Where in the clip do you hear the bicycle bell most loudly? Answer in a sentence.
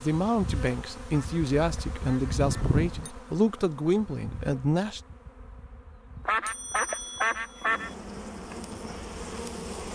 The volume of the bicycle bell peaks at 3 seconds.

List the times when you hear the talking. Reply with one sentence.
You can hear the talking from 0.0 to 5.0 s.